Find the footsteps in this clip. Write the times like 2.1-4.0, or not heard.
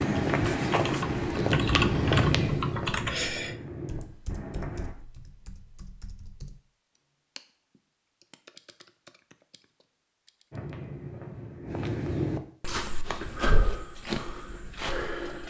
0.0-5.0, 10.5-15.4.